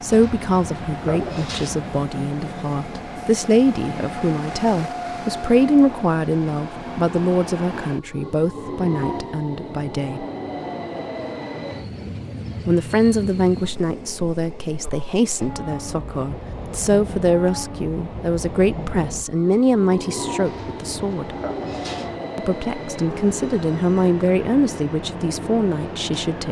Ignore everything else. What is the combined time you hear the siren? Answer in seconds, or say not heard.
not heard.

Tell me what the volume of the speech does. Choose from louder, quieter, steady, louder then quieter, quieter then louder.
steady.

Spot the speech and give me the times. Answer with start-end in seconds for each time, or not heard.
0.0-10.2, 12.7-21.4, 22.4-26.4.